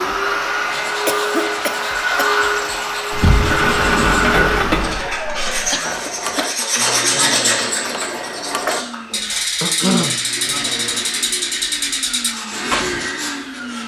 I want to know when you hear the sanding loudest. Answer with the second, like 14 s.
7 s.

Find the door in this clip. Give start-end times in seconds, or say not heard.
3.1-5.7.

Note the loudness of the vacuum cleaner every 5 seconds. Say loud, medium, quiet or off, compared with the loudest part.
loud, medium, medium.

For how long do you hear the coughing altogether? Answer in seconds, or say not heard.
3 s.